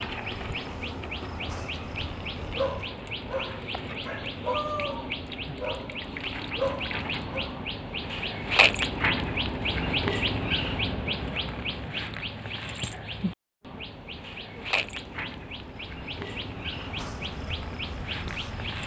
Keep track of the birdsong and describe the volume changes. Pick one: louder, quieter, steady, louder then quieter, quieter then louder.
louder then quieter.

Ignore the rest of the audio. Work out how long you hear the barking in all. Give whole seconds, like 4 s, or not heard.
5 s.